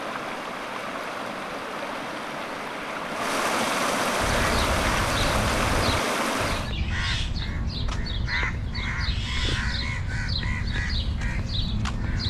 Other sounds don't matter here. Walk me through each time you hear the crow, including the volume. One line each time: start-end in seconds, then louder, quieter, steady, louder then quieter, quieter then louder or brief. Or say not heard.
4.2-12.2 steady.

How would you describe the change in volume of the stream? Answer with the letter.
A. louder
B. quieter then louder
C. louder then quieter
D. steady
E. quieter
A.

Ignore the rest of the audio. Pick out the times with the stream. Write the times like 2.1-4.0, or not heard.
0.0-6.7.